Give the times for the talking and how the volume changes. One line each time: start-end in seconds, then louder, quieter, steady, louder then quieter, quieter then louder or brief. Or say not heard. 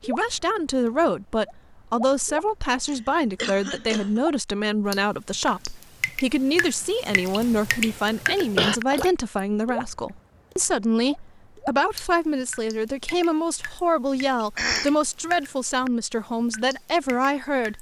0.0-17.7 steady.